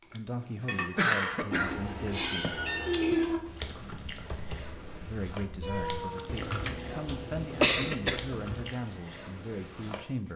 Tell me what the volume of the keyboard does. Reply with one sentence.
The loudness of the keyboard goes down, then up.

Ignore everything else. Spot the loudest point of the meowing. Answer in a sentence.
The loudest moment of the meowing is at 3 seconds.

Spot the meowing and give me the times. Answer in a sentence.
The meowing can be heard from 1.5 to 3.4 s and from 5.6 to 6.3 s.